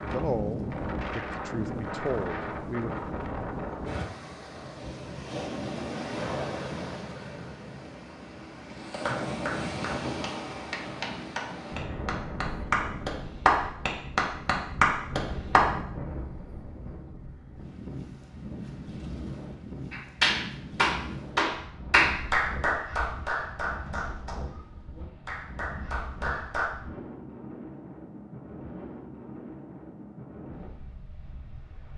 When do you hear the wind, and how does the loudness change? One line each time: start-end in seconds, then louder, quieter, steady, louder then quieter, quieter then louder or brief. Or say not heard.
0.0-31.9 quieter.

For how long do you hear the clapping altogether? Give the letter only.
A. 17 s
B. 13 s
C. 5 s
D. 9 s
B.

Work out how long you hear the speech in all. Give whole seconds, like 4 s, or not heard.
3 s.